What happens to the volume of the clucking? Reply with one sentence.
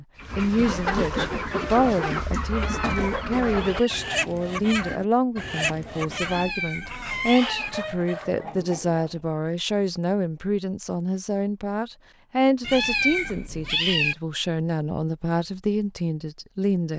The volume of the clucking goes down.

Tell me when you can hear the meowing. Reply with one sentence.
You can hear the meowing from 2.5 to 4.0 s, from 6.2 to 7.7 s and from 12.6 to 14.2 s.